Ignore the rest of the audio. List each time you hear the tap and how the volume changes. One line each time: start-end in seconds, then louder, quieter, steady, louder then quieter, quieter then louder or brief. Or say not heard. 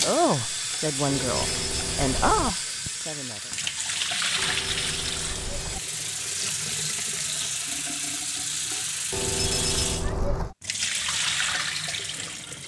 0.0-12.6 steady.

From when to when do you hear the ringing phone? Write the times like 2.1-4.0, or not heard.
1.1-2.5, 4.3-5.8, 9.1-10.6.